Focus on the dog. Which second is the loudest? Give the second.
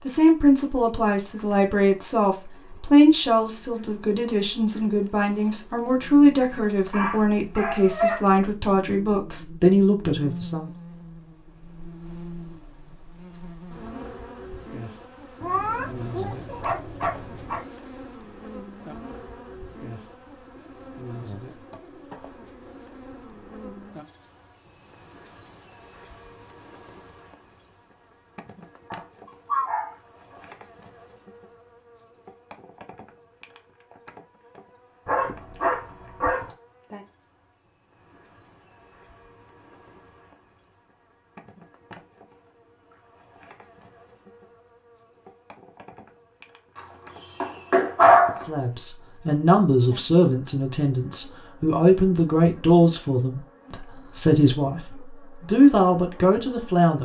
48 s.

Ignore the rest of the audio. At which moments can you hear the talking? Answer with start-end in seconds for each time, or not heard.
0.1-10.7, 48.5-57.0.